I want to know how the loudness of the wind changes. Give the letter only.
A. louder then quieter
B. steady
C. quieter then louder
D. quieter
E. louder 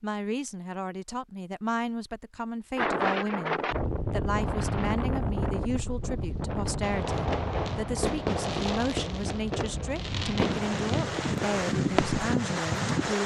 C.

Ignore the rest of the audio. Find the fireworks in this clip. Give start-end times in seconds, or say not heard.
6.8-12.2.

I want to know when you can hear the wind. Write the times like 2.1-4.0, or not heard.
2.8-13.2.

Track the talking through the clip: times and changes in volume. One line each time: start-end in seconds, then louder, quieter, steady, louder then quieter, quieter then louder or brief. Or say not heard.
0.0-13.2 steady.